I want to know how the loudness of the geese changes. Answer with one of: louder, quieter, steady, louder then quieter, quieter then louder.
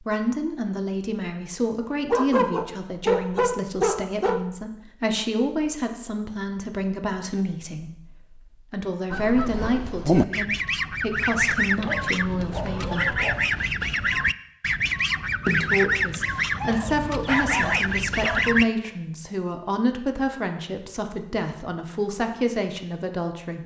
steady.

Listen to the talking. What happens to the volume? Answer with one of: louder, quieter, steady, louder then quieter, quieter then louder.
steady.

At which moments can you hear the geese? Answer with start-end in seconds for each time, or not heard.
9.1-18.6.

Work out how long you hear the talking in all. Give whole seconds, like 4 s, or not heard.
21 s.